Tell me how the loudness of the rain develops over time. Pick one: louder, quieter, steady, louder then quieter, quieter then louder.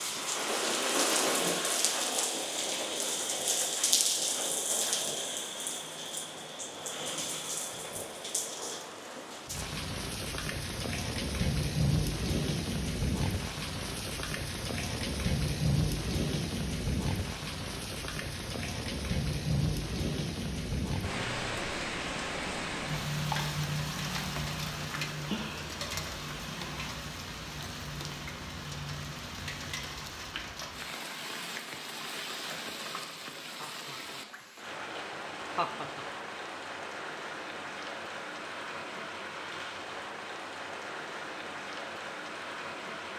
quieter.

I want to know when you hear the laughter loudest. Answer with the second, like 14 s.
36 s.